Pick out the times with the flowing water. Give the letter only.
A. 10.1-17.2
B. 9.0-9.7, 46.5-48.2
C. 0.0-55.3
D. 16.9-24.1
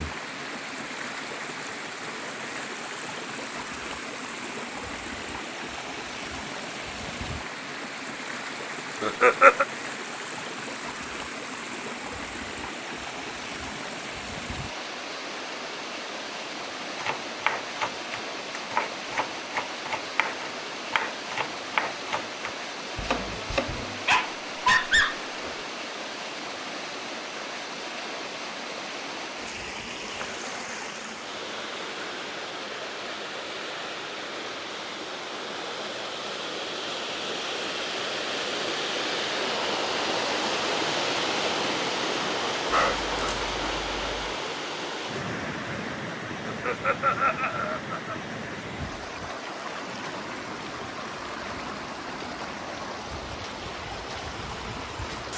C.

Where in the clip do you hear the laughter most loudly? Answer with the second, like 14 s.
9 s.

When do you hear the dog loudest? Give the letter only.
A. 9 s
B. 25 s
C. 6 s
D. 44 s
B.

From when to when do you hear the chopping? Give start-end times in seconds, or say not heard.
16.9-24.1.